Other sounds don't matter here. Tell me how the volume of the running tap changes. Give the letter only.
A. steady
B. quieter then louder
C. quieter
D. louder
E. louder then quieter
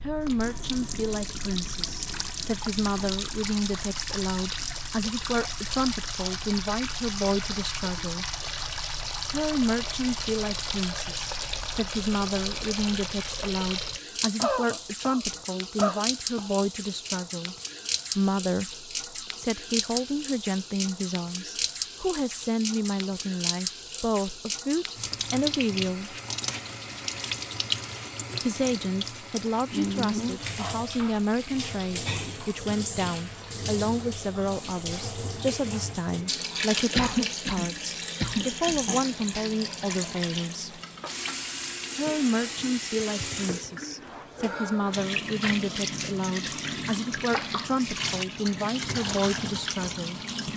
A.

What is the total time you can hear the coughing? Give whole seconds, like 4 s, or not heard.
4 s.